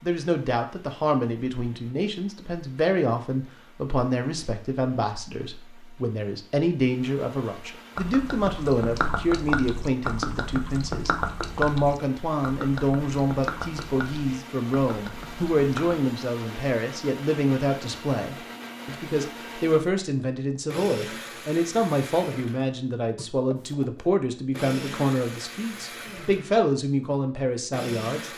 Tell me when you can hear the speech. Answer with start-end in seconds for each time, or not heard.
0.0-28.3.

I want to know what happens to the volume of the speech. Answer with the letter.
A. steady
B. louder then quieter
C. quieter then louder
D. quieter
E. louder
A.